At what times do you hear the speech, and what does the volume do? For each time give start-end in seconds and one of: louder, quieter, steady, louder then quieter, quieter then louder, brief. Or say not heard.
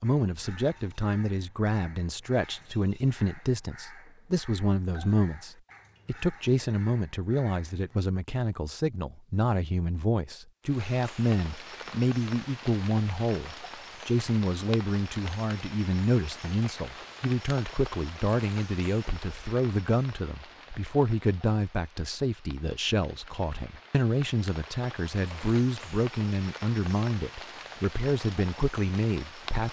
0.0-29.6 steady.